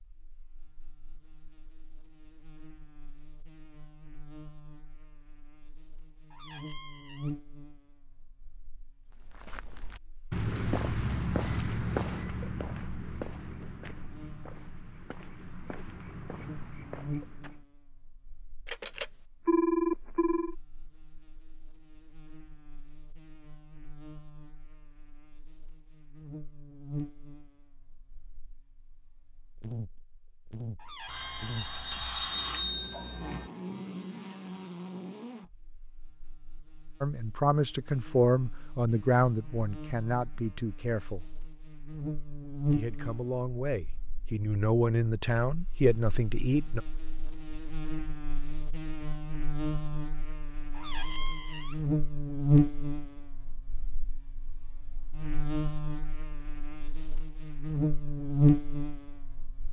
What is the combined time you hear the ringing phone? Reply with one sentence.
You can hear the ringing phone for 4 seconds altogether.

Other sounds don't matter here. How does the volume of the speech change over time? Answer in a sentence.
The loudness of the speech goes down, then up.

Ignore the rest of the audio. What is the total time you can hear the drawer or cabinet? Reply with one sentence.
The drawer or cabinet can be heard for 3 seconds in total.